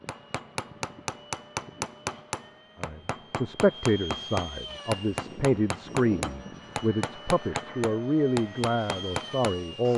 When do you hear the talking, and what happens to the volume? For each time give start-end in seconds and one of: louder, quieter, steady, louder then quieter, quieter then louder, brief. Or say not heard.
2.8-9.9 steady.